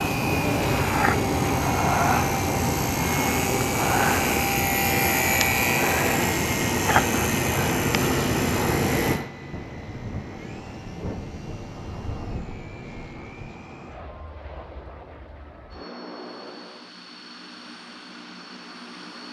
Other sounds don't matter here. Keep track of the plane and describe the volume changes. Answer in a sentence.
The volume of the plane goes down.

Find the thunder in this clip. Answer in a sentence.
You can hear the thunder from 9.5 to 13.6 s.